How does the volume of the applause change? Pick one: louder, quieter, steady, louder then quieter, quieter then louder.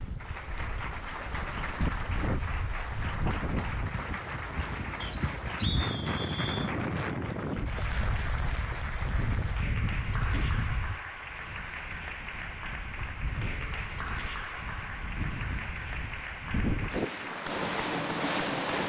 steady.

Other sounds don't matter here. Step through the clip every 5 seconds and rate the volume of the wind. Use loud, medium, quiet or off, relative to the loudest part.
medium, loud, medium, loud.